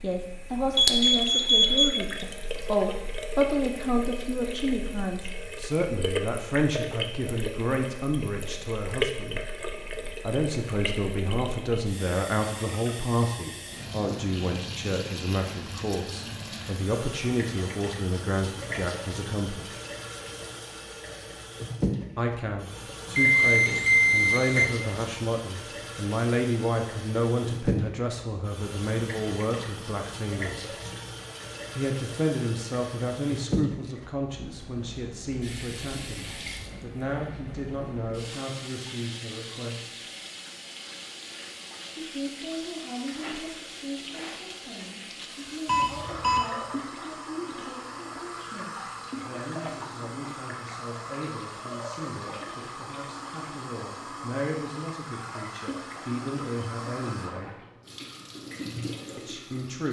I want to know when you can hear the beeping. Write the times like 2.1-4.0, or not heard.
0.8-1.9, 23.1-24.6, 45.6-46.4.